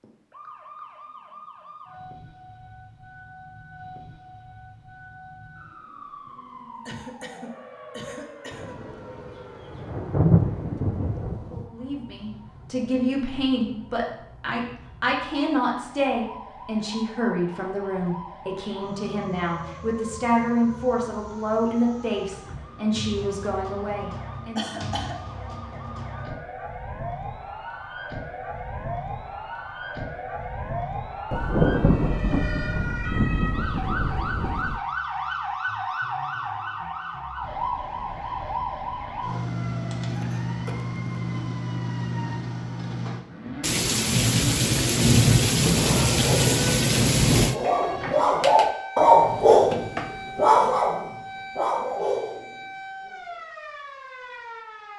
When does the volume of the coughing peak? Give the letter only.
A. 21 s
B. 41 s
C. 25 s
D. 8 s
C.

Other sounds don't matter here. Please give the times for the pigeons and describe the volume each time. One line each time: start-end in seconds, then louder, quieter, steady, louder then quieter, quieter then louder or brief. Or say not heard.
not heard.